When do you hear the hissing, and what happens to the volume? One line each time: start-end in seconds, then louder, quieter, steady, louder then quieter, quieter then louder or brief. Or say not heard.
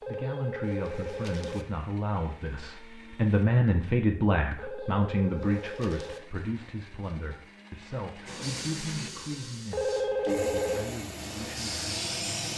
8.2-12.5 quieter then louder.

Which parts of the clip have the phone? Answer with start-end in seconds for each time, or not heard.
0.0-1.6, 4.5-6.2, 9.7-10.9.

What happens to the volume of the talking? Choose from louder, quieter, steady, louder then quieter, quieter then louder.
louder then quieter.